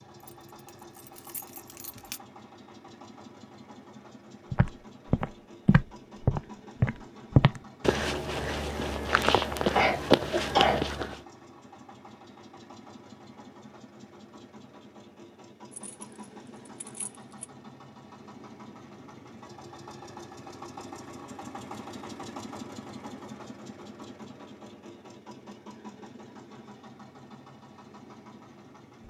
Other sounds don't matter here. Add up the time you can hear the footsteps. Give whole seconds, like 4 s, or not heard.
7 s.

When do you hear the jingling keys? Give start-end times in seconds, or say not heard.
0.2-2.2, 15.7-17.4.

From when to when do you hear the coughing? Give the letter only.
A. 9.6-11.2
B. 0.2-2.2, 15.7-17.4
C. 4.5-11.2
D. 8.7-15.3
A.